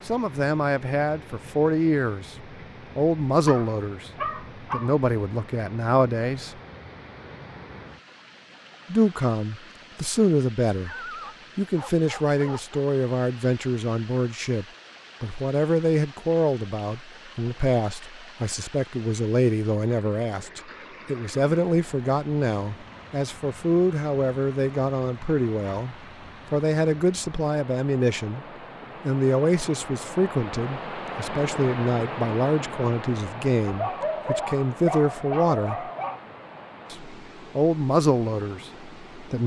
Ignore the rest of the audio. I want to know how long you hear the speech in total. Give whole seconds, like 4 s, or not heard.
35 s.